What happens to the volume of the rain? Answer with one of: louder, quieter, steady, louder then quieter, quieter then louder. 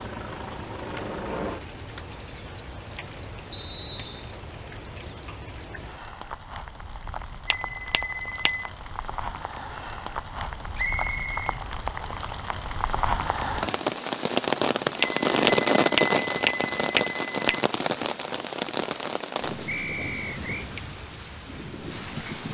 louder then quieter.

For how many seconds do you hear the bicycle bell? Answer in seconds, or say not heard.
4 s.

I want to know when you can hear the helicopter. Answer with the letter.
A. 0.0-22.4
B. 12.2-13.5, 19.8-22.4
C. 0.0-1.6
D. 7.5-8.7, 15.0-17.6
C.